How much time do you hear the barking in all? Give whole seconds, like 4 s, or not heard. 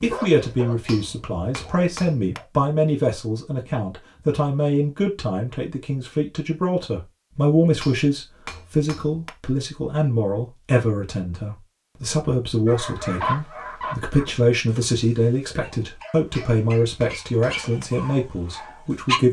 9 s.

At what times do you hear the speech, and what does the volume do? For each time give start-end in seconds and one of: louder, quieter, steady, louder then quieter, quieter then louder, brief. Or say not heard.
0.0-19.2 steady.